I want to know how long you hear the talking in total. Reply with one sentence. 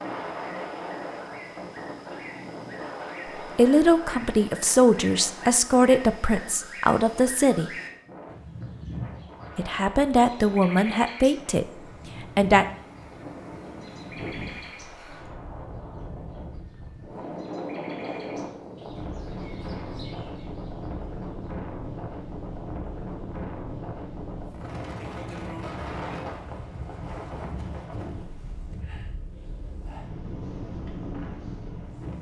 You can hear the talking for 7 seconds altogether.